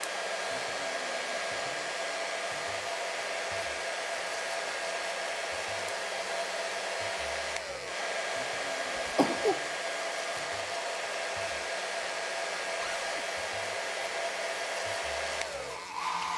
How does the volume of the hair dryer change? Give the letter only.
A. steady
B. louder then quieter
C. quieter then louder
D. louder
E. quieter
A.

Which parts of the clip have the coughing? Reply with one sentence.
The coughing can be heard from 8.8 to 9.6 s.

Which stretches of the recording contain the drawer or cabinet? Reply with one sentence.
The drawer or cabinet can be heard from 12.8 to 13.2 s.